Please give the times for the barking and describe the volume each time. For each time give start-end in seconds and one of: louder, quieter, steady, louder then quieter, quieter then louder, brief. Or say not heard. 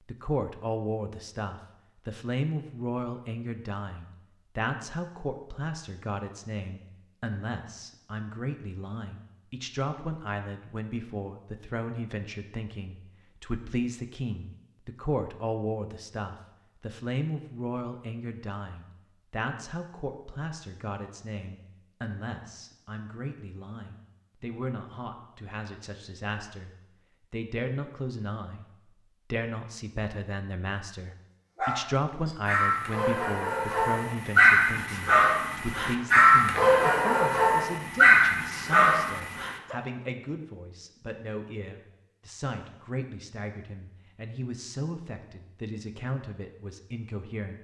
31.6-39.8 louder.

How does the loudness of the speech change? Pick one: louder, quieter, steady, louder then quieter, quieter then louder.
steady.